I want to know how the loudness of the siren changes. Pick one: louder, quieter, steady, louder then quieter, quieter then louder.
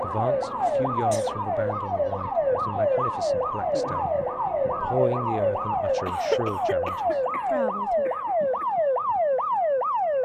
steady.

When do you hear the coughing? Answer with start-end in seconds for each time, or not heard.
0.7-1.3, 6.0-8.7.